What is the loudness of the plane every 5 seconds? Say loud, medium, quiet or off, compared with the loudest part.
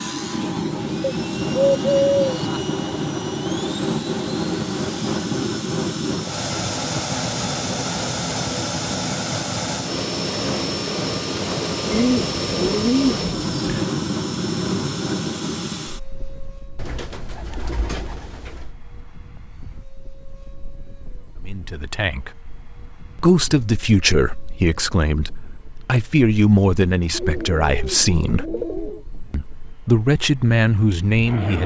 loud, loud, loud, medium, quiet, quiet, medium.